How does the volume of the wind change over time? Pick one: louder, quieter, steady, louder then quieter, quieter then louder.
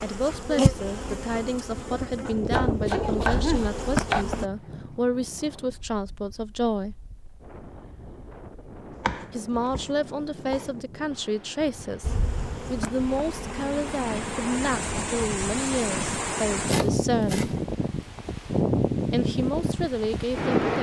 quieter then louder.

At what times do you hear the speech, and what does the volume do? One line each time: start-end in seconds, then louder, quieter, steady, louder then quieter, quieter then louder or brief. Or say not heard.
0.0-7.0 steady
9.3-17.5 steady
19.1-20.7 brief.